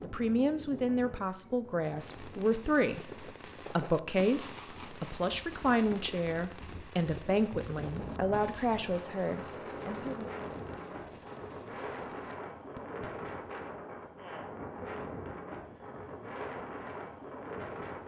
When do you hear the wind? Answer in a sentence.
The wind can be heard from 0.0 to 18.0 s.